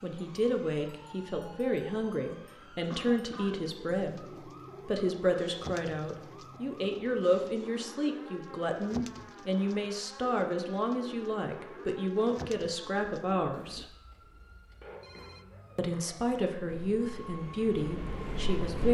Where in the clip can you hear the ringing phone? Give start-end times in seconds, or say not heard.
14.1-15.4.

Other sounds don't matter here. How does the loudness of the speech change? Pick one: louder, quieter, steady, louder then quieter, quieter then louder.
steady.